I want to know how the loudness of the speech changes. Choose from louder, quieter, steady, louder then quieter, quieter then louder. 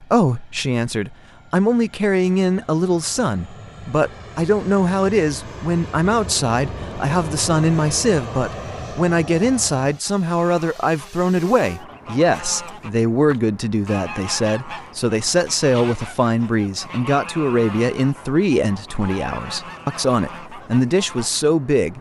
steady.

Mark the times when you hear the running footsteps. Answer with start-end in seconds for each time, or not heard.
not heard.